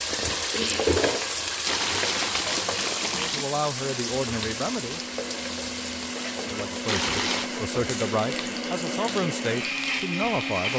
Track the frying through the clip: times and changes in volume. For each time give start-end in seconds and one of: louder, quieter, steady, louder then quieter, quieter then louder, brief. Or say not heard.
0.0-10.7 quieter.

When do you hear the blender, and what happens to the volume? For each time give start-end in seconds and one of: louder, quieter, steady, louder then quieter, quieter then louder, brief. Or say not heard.
2.5-10.7 louder.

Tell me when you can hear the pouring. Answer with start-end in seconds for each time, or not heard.
1.6-3.5, 6.8-7.5.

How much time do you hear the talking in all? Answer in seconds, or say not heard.
6 s.